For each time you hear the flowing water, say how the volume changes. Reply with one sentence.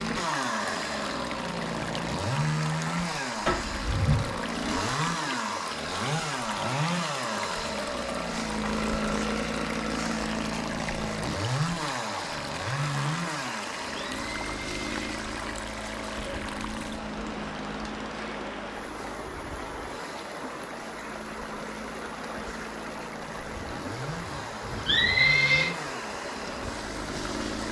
You can hear the flowing water from 0.0 to 27.6 s, at a steady volume.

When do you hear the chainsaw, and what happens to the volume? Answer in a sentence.
You can hear the chainsaw from 0.0 to 27.6 s, getting quieter.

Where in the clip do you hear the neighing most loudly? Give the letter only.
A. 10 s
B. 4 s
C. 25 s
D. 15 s
C.